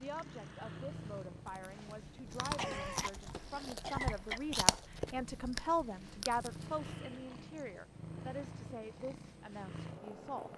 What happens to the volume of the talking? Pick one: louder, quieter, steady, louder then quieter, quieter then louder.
louder then quieter.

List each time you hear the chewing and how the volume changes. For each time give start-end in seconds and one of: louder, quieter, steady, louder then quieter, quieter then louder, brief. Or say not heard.
1.4-7.8 louder then quieter.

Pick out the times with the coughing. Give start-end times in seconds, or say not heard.
2.5-4.4.